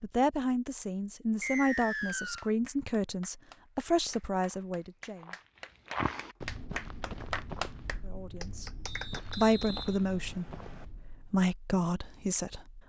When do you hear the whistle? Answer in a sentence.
You can hear the whistle from 1.4 to 2.5 s and from 8.8 to 10.8 s.